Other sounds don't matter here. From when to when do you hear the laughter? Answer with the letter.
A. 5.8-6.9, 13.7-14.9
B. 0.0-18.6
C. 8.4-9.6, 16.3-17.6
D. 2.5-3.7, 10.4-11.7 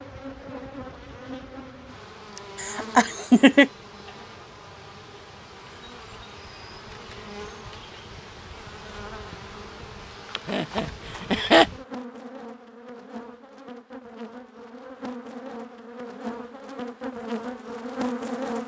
D.